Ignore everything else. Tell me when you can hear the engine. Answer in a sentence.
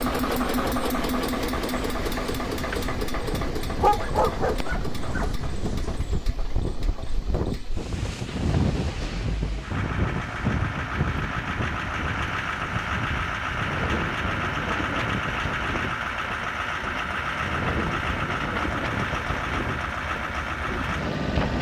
You can hear the engine from 0.0 to 21.5 s.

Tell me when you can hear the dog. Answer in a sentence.
You can hear the dog from 3.8 to 5.3 s.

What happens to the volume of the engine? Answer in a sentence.
The volume of the engine goes down, then up.